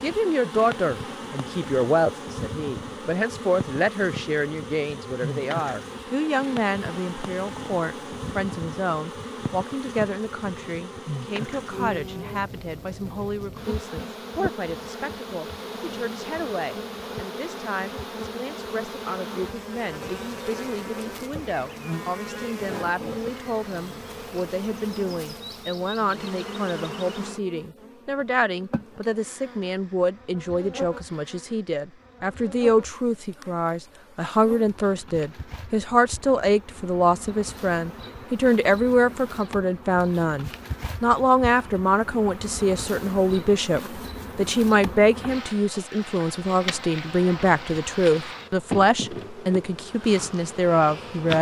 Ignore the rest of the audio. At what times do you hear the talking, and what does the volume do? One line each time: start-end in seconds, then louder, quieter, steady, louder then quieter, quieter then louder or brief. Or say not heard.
0.0-51.3 quieter then louder.